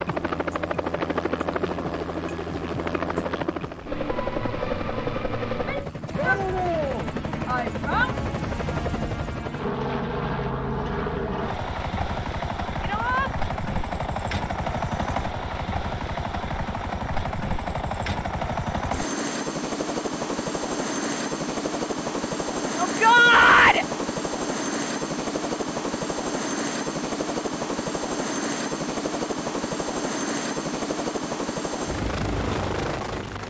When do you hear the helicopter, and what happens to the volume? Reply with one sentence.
The helicopter can be heard from 0.0 to 33.4 s, at a steady volume.